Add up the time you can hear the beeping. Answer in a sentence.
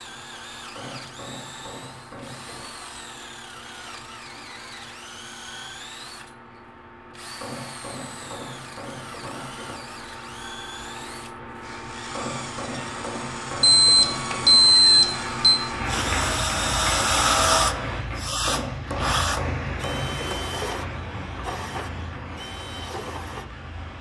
You can hear the beeping for 2 seconds altogether.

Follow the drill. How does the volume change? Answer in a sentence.
The volume of the drill goes up, then down.